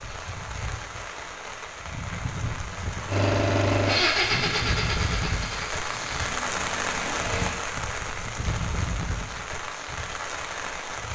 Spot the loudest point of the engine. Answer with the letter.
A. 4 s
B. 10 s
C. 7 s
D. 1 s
A.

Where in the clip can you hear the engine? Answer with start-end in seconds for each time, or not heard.
3.0-7.5.